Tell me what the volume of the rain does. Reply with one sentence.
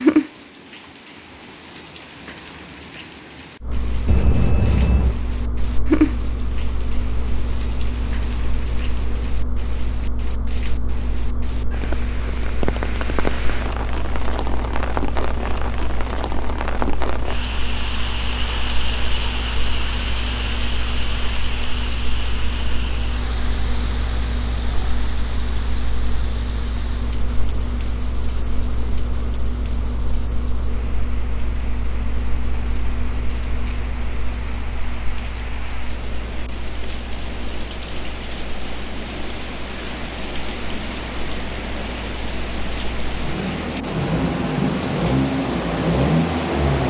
The volume of the rain goes down, then up.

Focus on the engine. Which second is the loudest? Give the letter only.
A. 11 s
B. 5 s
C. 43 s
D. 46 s
D.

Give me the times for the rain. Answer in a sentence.
The rain can be heard from 0.0 to 46.8 s.